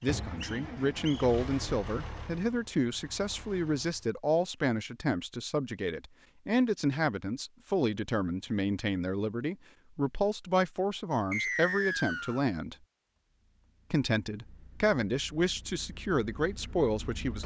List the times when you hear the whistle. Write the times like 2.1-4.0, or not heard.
0.0-1.2, 11.3-12.4.